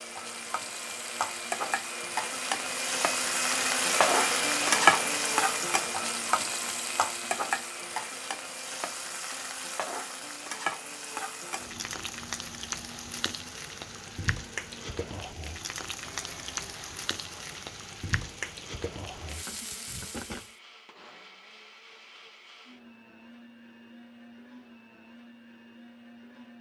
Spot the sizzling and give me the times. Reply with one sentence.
You can hear the sizzling from 0.0 to 20.6 s.